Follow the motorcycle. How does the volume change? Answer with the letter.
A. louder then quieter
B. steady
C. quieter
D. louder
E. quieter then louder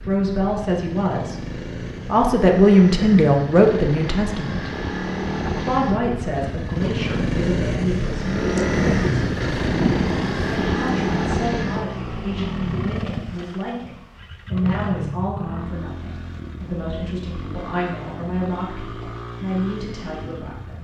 A.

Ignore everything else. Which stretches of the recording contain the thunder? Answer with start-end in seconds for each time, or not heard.
8.4-10.9.